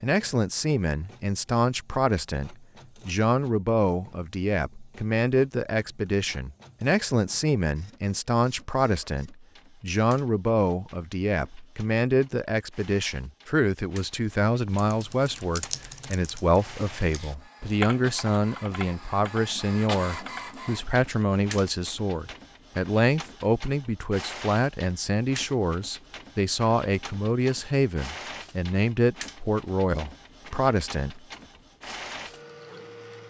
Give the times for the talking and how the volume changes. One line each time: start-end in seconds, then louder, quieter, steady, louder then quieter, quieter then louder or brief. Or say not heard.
0.0-31.2 steady.